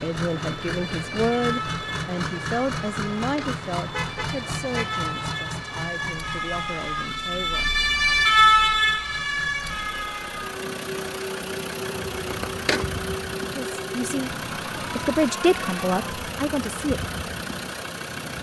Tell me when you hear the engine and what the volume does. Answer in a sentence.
You can hear the engine from 0.0 to 18.3 s, getting quieter then louder.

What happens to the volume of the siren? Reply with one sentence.
The volume of the siren goes up, then down.